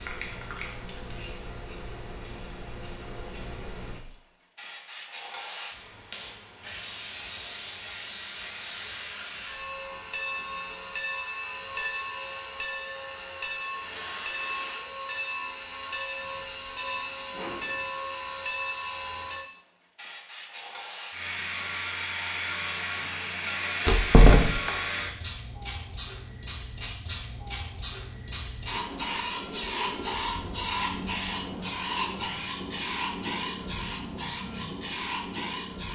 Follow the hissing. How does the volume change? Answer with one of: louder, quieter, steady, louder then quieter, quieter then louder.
louder.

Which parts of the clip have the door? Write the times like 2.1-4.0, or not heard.
23.9-24.7.